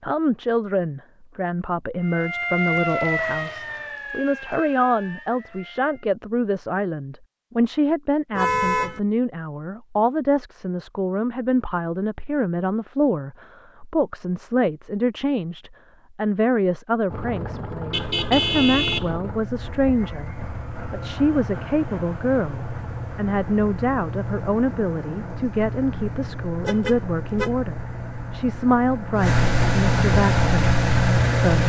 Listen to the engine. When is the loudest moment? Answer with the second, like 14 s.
31 s.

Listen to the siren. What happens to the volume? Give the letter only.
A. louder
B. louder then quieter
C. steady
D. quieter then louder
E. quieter
E.